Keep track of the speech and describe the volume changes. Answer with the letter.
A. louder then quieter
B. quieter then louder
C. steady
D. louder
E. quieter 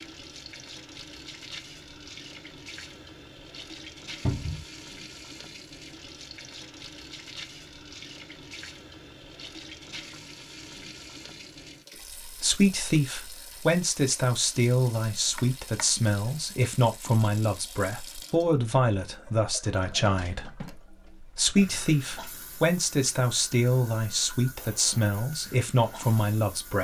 C.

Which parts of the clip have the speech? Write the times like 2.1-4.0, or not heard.
12.1-26.7.